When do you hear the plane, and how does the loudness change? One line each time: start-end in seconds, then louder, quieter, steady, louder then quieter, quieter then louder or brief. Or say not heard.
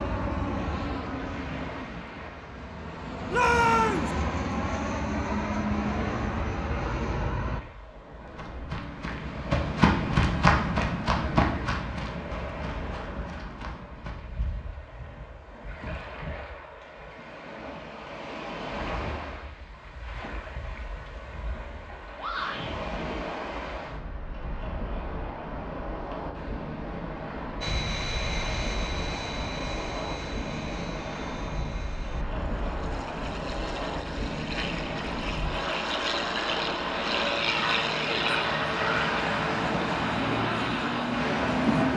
0.0-7.6 quieter then louder
27.6-41.9 quieter then louder.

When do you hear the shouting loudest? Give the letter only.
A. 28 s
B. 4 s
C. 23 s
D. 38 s
B.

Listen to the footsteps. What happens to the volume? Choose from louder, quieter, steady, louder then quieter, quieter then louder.
louder then quieter.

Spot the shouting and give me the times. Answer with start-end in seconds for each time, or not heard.
3.3-4.1, 22.1-22.8.